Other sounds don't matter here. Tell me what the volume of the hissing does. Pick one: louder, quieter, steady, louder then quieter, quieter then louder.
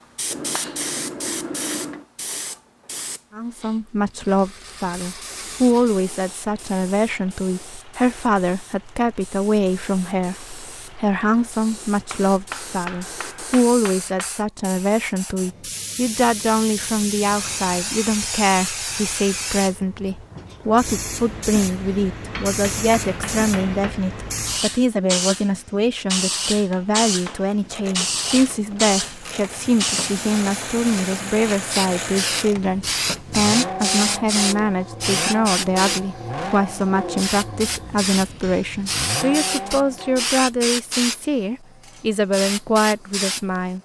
louder.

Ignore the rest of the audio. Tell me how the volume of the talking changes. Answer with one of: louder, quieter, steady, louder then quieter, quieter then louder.
steady.